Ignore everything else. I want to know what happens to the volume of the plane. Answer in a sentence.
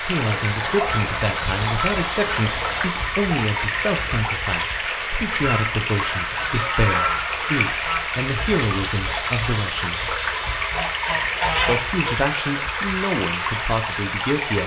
The volume of the plane stays about the same.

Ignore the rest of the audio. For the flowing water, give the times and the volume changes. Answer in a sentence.
The flowing water can be heard from 0.0 to 14.6 s, at a steady volume.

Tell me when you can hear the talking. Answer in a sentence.
The talking can be heard from 0.0 to 10.2 s and from 11.7 to 14.6 s.